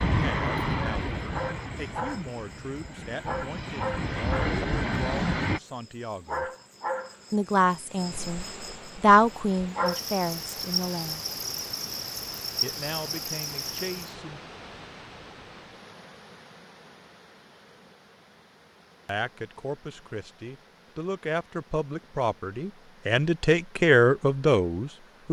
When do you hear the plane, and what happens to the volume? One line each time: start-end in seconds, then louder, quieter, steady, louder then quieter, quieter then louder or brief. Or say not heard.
0.0-5.6 quieter then louder.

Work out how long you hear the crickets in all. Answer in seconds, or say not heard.
14 s.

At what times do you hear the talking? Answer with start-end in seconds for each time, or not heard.
0.1-6.5, 7.3-11.2, 12.6-14.4, 19.1-25.2.